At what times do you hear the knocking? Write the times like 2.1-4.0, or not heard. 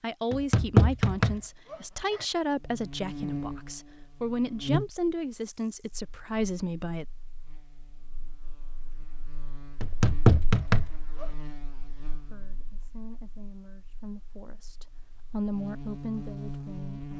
0.3-2.2, 9.8-11.2.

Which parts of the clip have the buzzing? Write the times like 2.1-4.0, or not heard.
2.5-17.1.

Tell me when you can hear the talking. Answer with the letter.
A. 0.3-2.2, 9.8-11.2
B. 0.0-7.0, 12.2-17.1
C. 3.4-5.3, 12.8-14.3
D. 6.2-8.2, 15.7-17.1
B.